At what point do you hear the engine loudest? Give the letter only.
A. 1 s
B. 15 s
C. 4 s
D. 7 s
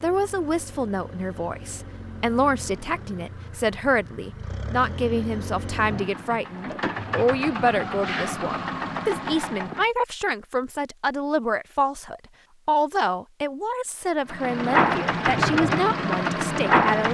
B.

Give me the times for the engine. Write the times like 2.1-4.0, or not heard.
0.0-9.8, 14.2-17.1.